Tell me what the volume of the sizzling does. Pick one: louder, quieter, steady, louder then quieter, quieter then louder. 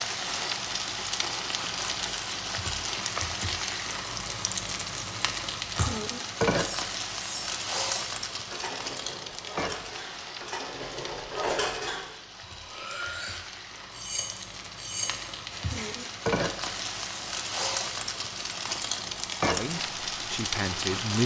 quieter then louder.